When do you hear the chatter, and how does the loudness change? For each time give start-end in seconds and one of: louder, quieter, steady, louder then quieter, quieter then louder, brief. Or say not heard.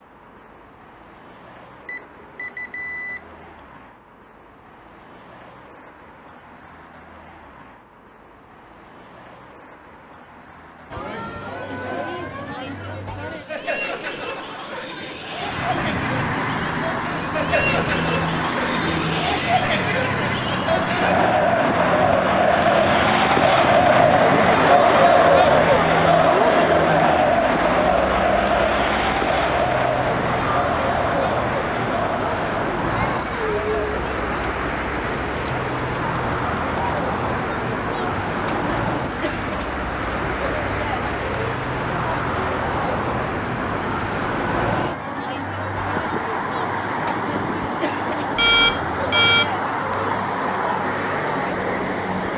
10.9-52.3 louder then quieter.